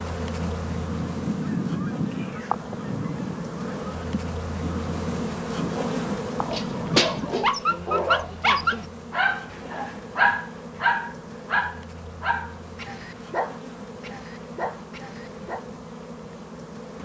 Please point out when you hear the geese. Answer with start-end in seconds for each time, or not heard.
0.4-7.4.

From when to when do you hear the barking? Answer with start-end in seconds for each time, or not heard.
6.4-15.7.